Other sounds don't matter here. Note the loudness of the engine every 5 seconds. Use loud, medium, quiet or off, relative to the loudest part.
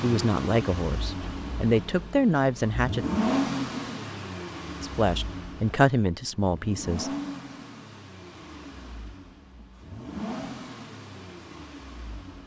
loud, medium, medium.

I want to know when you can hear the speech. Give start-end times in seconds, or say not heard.
0.0-3.0, 4.8-7.1.